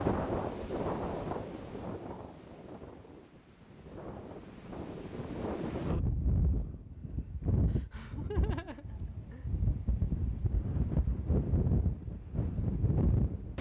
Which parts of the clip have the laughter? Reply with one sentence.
You can hear the laughter from 7.7 to 9.4 s.